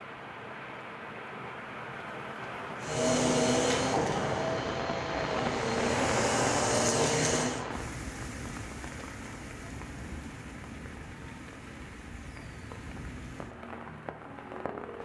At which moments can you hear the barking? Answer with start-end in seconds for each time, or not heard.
not heard.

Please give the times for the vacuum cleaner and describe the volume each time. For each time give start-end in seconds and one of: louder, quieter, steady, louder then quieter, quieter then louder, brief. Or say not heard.
2.8-7.7 quieter then louder.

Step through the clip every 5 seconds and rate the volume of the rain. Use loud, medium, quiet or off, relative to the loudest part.
loud, loud, medium.